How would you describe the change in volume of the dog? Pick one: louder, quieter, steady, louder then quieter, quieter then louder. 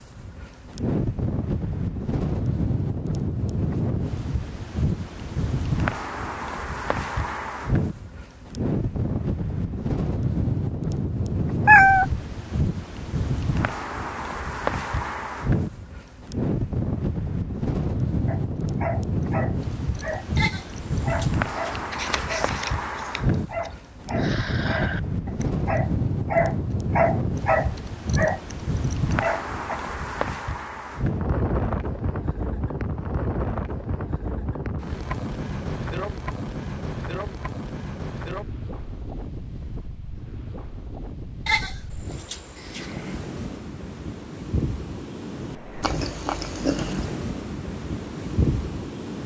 louder.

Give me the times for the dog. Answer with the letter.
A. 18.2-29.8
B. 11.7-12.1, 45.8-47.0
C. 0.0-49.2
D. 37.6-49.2
A.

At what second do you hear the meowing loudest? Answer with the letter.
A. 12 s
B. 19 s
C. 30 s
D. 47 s
A.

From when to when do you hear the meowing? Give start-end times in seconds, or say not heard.
11.7-12.1, 45.8-47.0.